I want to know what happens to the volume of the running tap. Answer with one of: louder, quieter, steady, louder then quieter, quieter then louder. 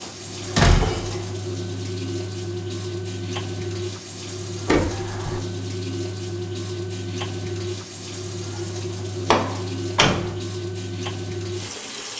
steady.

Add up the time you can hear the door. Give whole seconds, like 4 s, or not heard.
3 s.